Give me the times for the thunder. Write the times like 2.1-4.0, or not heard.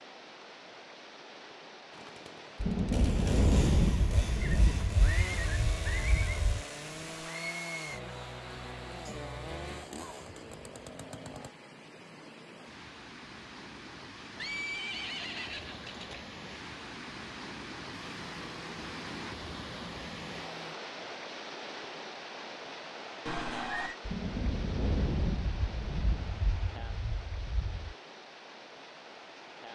2.6-6.6, 24.1-27.9.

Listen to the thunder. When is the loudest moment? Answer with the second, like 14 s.
4 s.